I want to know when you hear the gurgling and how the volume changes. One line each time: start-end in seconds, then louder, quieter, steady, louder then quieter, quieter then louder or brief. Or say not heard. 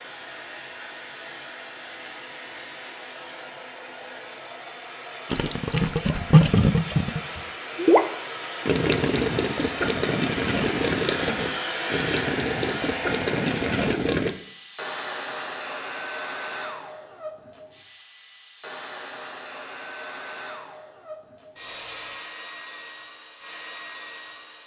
5.3-14.3 quieter.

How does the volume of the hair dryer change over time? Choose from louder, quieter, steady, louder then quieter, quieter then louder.
louder then quieter.